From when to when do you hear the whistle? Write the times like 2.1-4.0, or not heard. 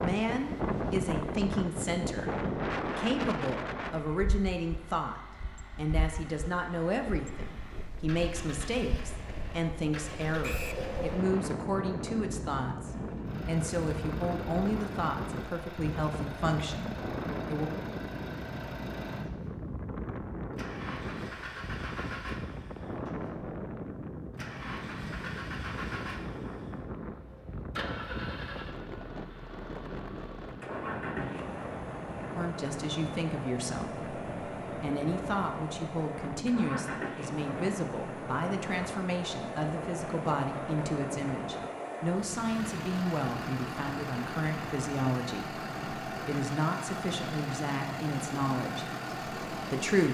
10.4-10.8.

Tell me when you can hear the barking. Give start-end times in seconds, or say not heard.
not heard.